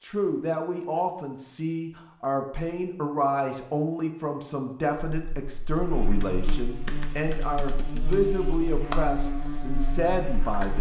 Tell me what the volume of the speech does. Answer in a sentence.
The volume of the speech stays about the same.